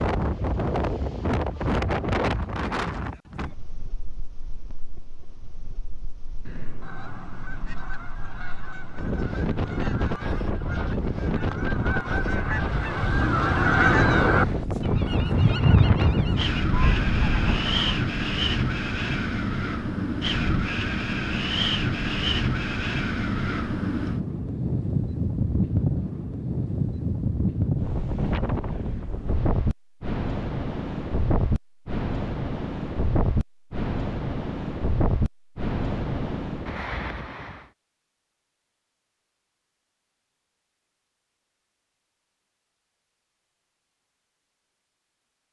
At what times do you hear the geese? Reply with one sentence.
You can hear the geese from 6.5 to 18.1 s.